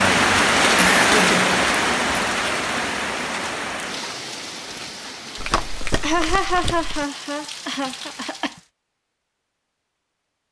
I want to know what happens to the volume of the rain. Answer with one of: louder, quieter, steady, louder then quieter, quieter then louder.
quieter.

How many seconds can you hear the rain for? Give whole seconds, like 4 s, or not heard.
9 s.